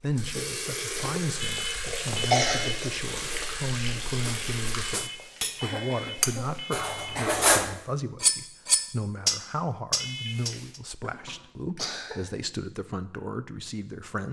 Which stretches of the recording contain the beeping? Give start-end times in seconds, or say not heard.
1.4-2.9, 4.8-7.3, 10.0-10.8.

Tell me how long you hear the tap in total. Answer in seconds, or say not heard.
5 s.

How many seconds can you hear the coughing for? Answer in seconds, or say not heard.
4 s.